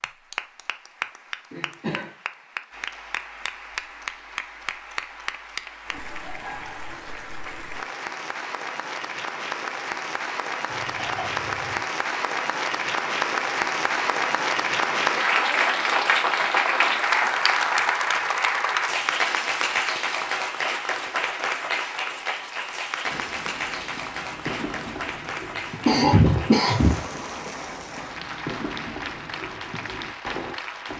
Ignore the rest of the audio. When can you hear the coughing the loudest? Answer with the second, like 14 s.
26 s.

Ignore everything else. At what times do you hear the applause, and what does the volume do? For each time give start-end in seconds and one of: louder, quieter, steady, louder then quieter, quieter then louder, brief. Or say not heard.
0.0-30.9 louder then quieter.